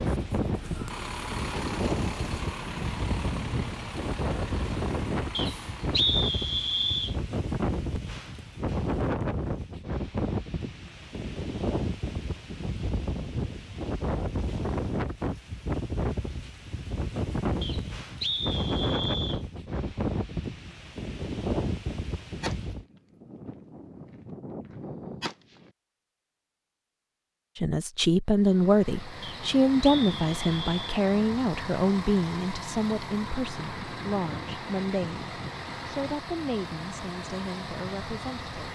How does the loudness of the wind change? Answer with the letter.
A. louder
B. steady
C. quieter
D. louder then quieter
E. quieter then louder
B.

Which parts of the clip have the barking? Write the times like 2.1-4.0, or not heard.
not heard.